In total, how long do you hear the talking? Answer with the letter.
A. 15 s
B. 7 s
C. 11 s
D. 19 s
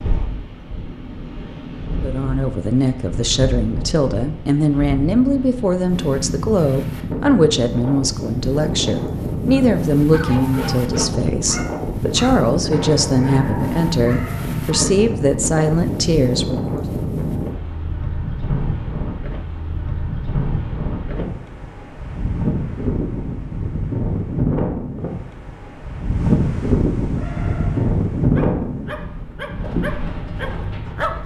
A.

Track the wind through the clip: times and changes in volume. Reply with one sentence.
The wind can be heard from 0.0 to 31.2 s, getting louder.